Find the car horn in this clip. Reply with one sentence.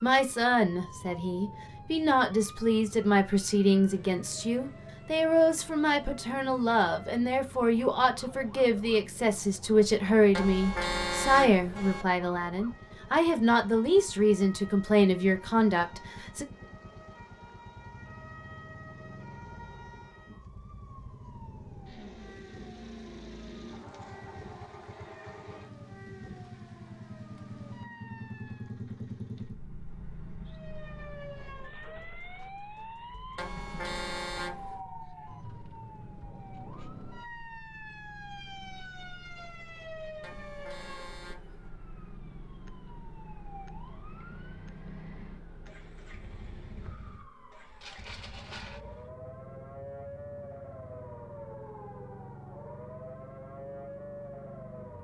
You can hear the car horn from 10.3 to 12.1 s, from 33.4 to 34.8 s and from 40.2 to 41.6 s.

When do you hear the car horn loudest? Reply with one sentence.
The volume of the car horn peaks at 11 seconds.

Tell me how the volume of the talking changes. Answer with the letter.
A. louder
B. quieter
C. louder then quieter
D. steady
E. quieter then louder
D.